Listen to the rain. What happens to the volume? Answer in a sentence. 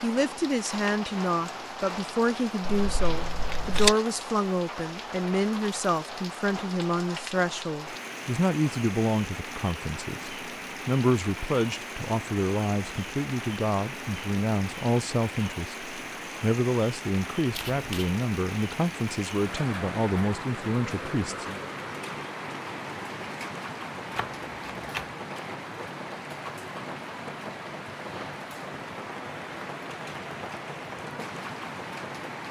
The loudness of the rain stays about the same.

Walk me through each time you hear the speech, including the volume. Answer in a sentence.
The speech can be heard from 0.0 to 21.6 s, at a steady volume.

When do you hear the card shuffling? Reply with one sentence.
The card shuffling can be heard from 2.6 to 4.0 s, from 17.5 to 18.1 s and from 24.1 to 25.1 s.